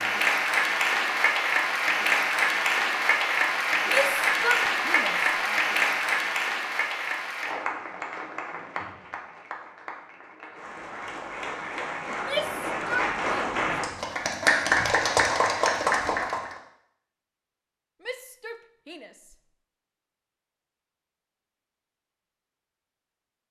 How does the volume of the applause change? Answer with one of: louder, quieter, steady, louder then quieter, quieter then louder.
quieter then louder.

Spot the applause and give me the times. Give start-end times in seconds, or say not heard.
0.0-16.6.